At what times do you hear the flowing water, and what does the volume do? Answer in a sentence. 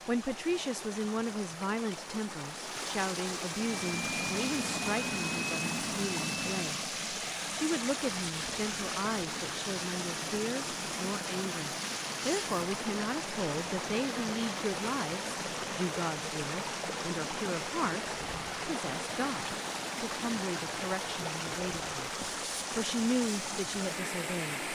The flowing water can be heard from 0.0 to 24.6 s, at a steady volume.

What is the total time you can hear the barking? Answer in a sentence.
You can't hear the barking here.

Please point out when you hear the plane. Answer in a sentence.
The plane can be heard from 3.5 to 7.0 s.